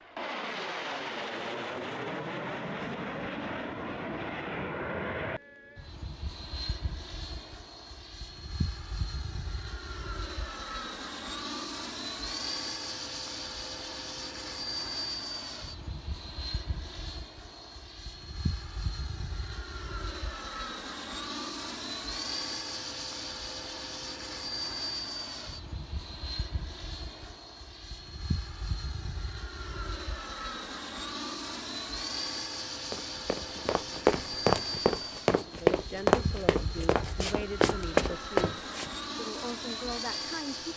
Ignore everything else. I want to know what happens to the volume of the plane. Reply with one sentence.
The loudness of the plane stays about the same.